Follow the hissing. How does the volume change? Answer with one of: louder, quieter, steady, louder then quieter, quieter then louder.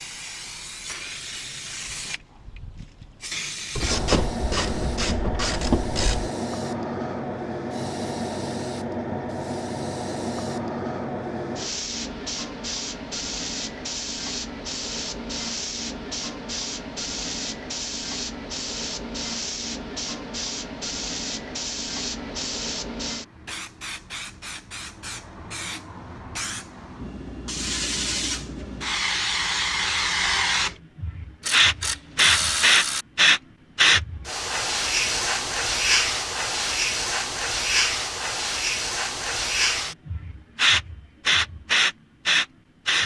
louder.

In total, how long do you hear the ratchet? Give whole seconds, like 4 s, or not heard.
4 s.